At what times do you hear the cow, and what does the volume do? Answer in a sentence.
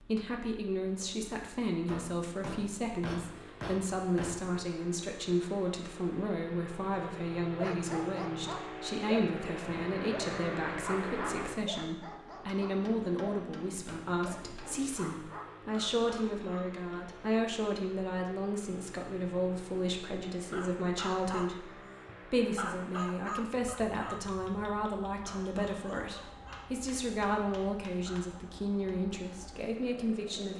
The cow can't be heard in this clip.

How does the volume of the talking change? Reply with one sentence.
The volume of the talking stays about the same.